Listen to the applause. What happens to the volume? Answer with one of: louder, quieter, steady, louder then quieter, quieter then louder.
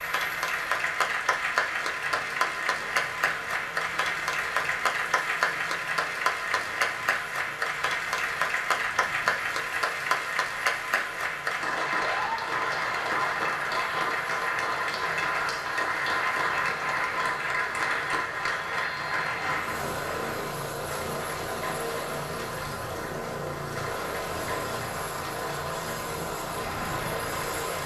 quieter.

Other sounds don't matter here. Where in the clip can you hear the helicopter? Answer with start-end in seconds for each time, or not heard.
0.0-27.8.